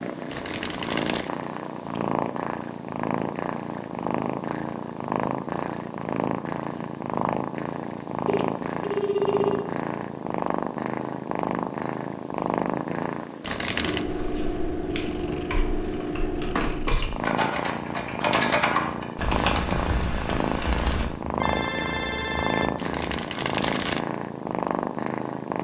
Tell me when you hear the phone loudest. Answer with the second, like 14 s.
9 s.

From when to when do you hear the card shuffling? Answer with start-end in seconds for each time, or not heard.
0.3-1.3, 13.4-14.1, 22.8-24.0.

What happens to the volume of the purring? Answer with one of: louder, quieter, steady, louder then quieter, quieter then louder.
steady.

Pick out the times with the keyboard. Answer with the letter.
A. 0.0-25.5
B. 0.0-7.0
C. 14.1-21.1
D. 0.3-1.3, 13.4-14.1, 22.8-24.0
C.